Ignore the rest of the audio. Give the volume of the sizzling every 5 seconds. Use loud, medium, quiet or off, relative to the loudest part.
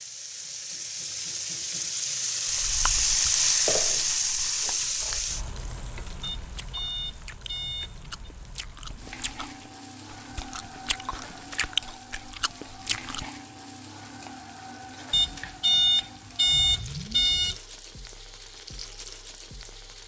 loud, quiet, quiet, quiet.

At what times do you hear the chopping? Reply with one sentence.
You can't hear the chopping here.